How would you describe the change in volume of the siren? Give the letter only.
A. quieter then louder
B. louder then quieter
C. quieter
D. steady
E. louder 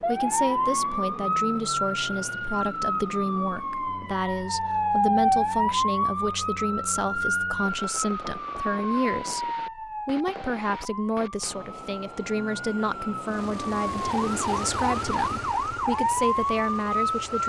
A.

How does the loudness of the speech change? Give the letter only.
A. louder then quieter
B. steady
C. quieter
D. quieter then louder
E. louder
B.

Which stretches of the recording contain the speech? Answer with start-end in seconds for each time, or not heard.
0.0-17.4.